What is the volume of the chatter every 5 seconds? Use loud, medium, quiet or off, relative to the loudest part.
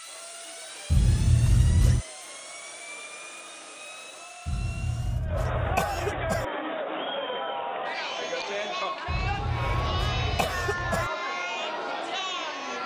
quiet, loud, loud.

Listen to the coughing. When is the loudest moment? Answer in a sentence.
The volume of the coughing peaks at 1 second.